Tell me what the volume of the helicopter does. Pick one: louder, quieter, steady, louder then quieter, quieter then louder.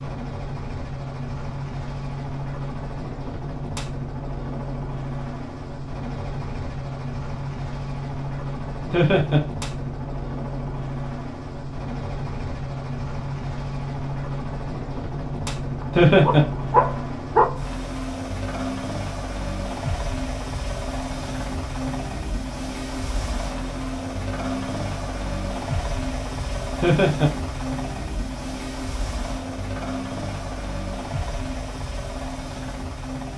steady.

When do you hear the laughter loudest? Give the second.
16 s.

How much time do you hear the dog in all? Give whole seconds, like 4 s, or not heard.
2 s.